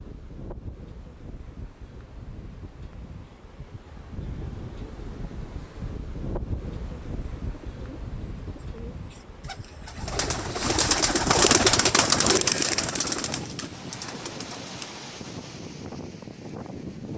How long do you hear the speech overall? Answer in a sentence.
The speech can't be heard in this clip.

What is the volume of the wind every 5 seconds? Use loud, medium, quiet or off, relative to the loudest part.
medium, loud, loud, loud.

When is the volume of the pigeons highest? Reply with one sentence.
The loudest moment of the pigeons is at 12 seconds.